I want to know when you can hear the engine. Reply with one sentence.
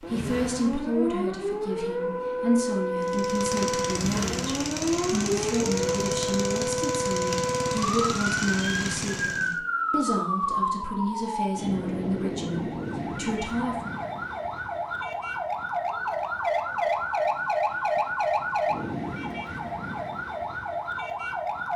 You can hear the engine from 3.0 to 9.6 s.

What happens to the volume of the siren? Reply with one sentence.
The volume of the siren stays about the same.